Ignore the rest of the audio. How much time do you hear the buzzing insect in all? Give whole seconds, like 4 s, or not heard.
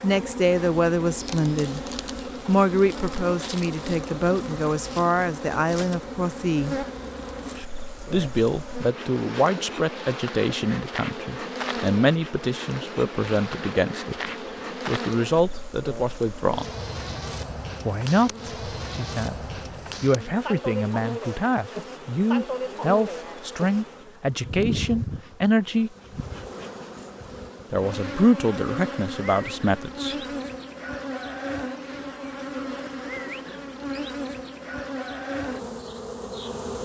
37 s.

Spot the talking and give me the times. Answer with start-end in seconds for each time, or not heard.
0.0-1.8, 2.5-6.8, 8.1-16.6, 17.9-25.9, 27.7-30.1.